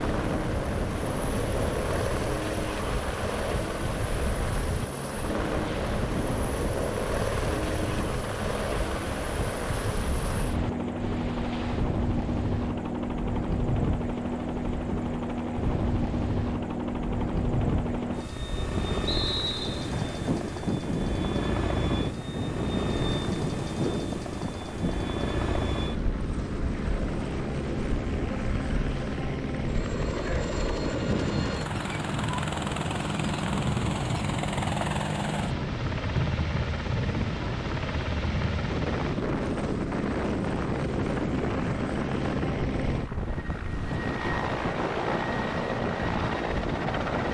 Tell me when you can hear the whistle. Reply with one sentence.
The whistle can be heard from 19.1 to 19.9 s.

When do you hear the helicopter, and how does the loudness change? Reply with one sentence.
The helicopter can be heard from 0.0 to 47.2 s, at a steady volume.